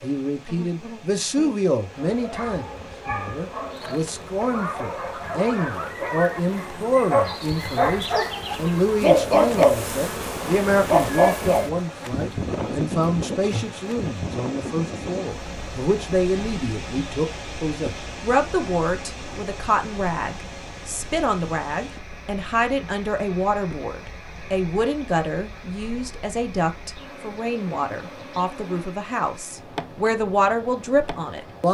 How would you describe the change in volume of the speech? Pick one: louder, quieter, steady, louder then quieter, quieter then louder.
steady.